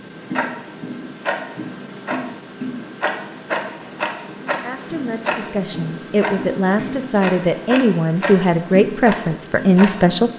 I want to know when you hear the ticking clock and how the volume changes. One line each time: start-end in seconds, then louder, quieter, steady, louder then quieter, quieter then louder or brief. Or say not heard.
0.0-10.3 steady.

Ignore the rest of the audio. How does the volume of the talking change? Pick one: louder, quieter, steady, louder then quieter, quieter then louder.
louder.